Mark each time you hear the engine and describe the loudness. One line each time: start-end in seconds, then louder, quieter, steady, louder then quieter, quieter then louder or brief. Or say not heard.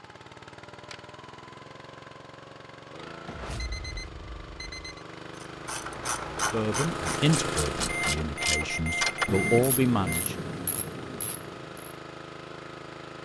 0.0-13.1 louder then quieter.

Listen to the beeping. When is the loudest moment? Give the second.
9 s.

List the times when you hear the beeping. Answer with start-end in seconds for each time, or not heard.
3.2-5.0, 7.8-10.2.